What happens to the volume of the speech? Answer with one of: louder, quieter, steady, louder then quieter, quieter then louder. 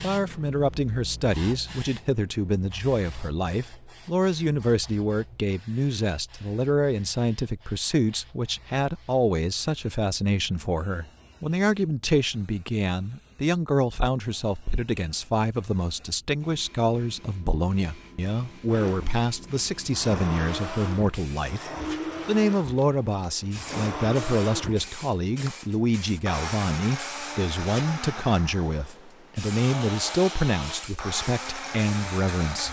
steady.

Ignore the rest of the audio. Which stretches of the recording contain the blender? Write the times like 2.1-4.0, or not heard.
18.6-32.6.